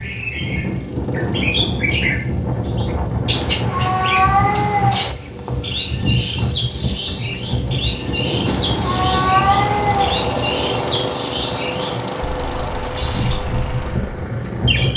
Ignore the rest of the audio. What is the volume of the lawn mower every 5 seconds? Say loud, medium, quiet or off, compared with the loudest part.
quiet, medium, loud.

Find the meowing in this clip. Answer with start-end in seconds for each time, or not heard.
3.3-5.2, 8.4-10.2.